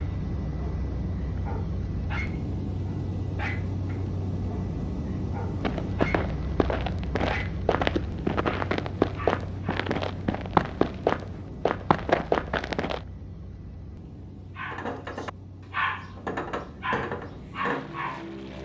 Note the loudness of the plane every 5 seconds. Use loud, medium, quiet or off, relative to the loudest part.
loud, loud, medium, medium.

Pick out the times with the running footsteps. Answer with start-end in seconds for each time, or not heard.
5.6-13.0.